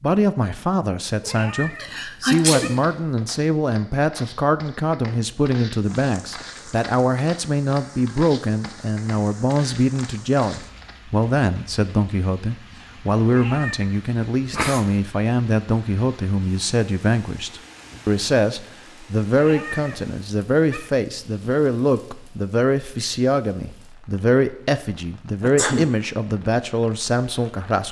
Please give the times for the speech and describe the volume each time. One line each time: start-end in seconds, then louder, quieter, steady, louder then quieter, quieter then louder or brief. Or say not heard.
0.0-27.8 steady.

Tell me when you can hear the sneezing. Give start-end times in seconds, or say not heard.
1.8-3.2, 14.5-14.9, 25.4-25.9.